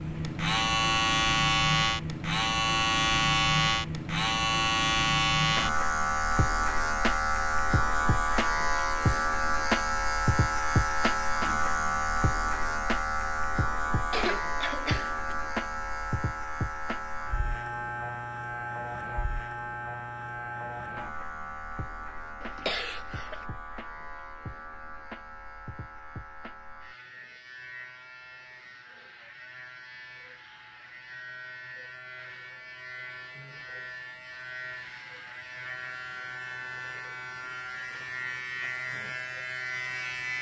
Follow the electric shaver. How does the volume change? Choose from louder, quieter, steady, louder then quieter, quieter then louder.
quieter then louder.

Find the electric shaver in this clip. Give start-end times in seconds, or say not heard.
0.0-40.3.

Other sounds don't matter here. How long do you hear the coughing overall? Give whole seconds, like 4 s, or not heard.
2 s.